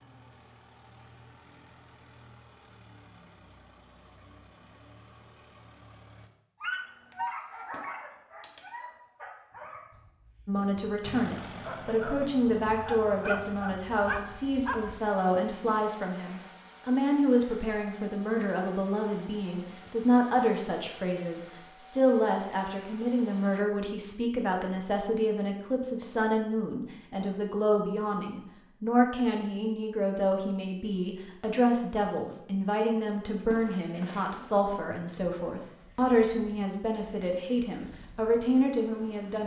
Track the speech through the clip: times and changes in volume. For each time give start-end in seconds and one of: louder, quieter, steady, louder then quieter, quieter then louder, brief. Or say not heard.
10.4-39.4 steady.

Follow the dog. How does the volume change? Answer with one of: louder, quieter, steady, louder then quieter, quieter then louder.
quieter then louder.